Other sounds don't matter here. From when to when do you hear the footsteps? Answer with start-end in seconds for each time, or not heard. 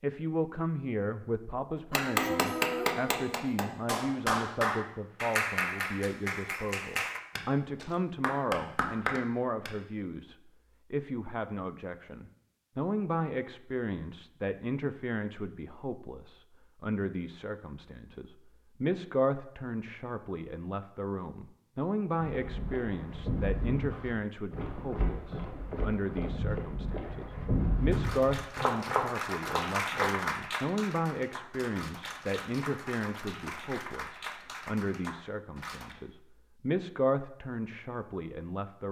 22.1-30.1.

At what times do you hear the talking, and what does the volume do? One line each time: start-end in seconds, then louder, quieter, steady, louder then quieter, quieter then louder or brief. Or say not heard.
0.0-38.8 steady.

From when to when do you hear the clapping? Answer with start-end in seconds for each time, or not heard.
1.9-9.8, 27.9-36.0.